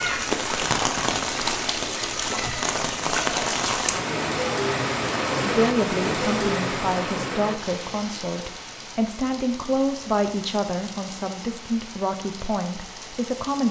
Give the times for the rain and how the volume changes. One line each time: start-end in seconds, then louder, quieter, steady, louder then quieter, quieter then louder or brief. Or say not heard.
0.0-13.6 quieter.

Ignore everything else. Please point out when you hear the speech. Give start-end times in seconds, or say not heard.
5.4-13.6.